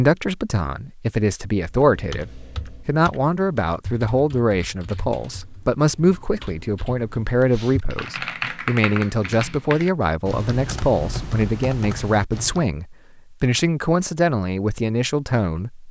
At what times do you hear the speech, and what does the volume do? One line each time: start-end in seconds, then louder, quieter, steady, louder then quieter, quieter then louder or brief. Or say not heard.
0.0-15.8 steady.